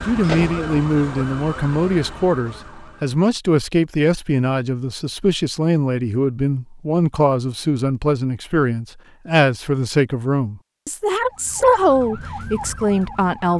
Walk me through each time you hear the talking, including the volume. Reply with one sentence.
You can hear the talking from 0.1 to 13.5 s, at a steady volume.